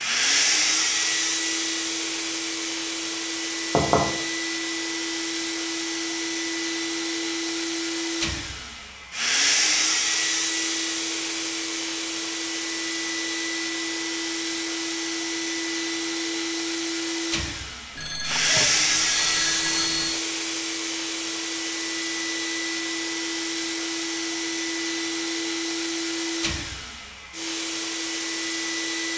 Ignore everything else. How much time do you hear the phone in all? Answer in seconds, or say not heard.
2 s.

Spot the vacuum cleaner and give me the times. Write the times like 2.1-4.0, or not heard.
0.0-29.1.